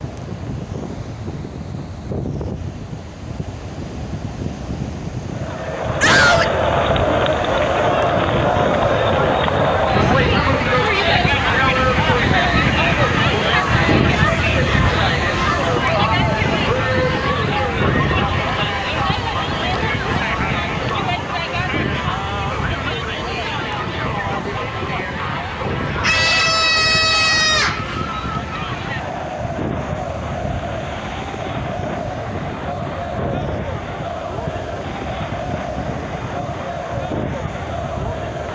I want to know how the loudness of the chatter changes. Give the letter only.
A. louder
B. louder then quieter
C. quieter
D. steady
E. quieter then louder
C.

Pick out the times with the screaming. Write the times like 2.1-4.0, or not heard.
6.0-6.5, 26.0-27.8.